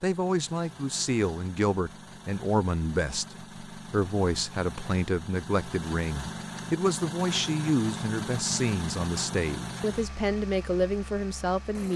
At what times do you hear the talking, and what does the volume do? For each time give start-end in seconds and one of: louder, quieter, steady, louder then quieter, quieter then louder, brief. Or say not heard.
0.0-11.9 steady.